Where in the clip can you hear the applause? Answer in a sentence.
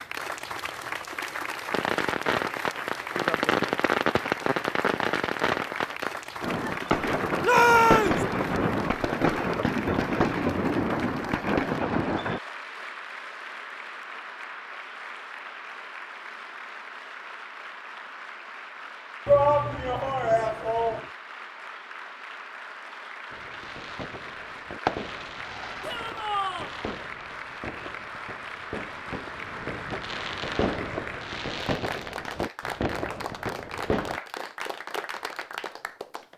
The applause can be heard from 0.0 to 36.3 s.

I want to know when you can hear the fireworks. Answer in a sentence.
The fireworks can be heard from 1.7 to 12.4 s and from 23.3 to 34.2 s.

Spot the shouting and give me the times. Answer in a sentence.
The shouting can be heard from 7.4 to 8.2 s, from 19.2 to 21.1 s and from 25.8 to 26.8 s.